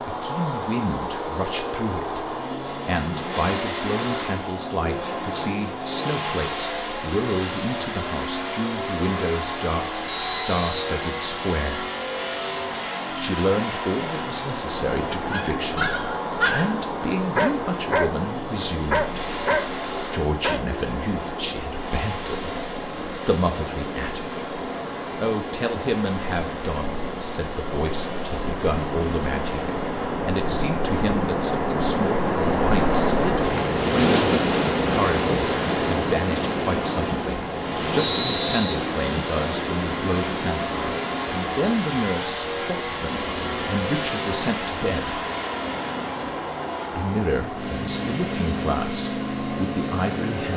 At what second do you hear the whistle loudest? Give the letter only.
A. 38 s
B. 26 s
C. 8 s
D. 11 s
A.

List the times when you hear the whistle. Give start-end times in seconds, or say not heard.
10.1-10.8, 38.0-38.8.